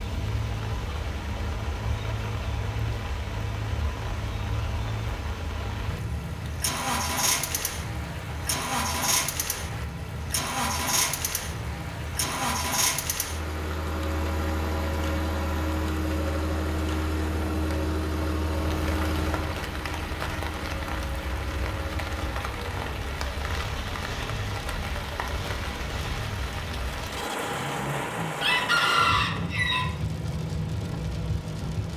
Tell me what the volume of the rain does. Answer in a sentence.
The loudness of the rain goes up.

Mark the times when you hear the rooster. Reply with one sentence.
The rooster can be heard from 28.4 to 29.9 s.